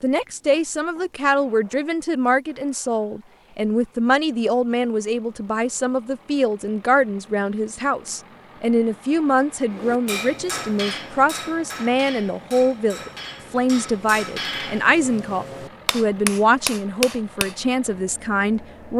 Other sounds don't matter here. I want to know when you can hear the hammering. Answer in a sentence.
You can hear the hammering from 9.7 to 17.6 s.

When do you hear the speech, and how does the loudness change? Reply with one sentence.
The speech can be heard from 0.0 to 18.9 s, at a steady volume.